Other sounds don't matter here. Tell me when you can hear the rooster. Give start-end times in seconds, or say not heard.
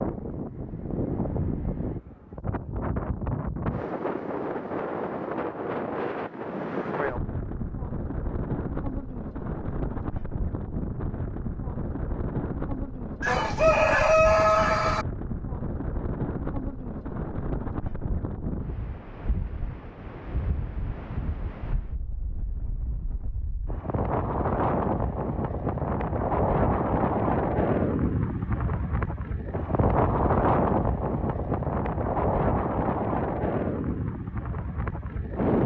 13.2-15.1.